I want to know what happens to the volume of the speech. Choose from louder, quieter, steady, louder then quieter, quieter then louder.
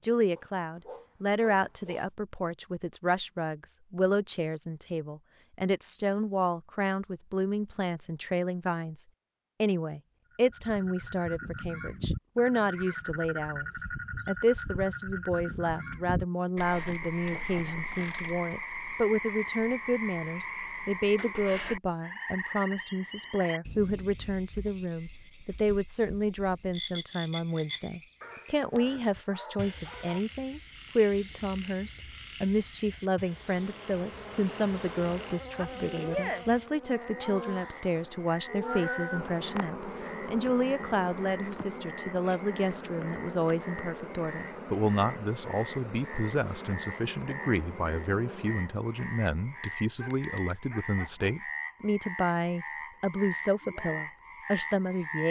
steady.